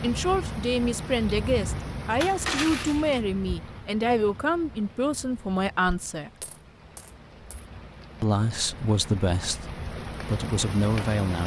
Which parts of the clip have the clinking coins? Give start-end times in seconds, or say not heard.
2.1-3.2, 5.8-7.7.